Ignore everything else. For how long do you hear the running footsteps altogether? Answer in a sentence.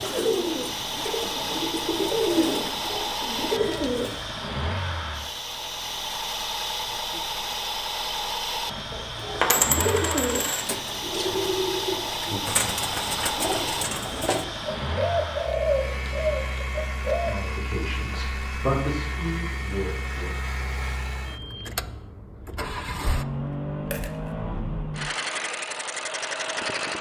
The running footsteps can't be heard in this clip.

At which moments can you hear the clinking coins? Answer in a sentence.
You can hear the clinking coins from 8.9 to 10.7 s and from 23.9 to 24.3 s.